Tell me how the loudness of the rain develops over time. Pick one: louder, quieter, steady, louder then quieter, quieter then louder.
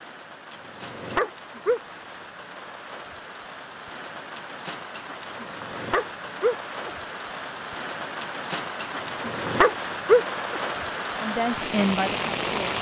louder.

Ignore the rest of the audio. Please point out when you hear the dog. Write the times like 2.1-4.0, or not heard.
0.5-1.8, 5.3-6.9, 8.9-10.6.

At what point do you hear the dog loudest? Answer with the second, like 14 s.
10 s.